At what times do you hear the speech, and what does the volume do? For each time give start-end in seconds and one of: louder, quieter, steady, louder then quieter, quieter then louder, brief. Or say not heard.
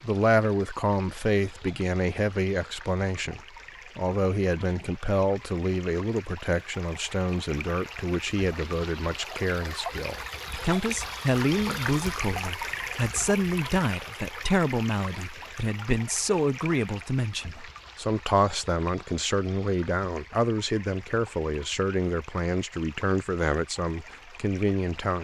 0.0-25.1 steady.